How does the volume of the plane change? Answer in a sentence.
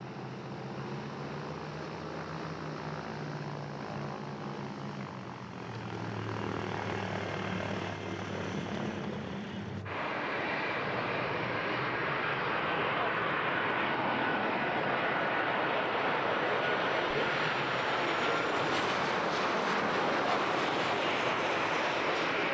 The volume of the plane goes up.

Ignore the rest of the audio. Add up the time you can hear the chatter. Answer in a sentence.
The chatter can be heard for 12 seconds in total.